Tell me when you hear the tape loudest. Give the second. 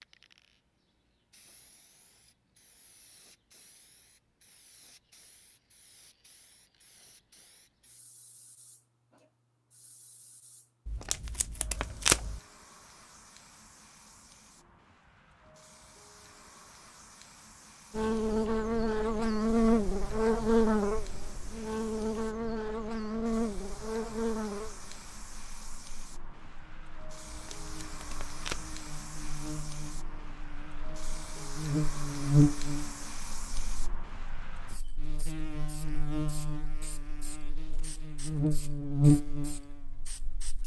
12 s.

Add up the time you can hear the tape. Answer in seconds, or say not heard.
3 s.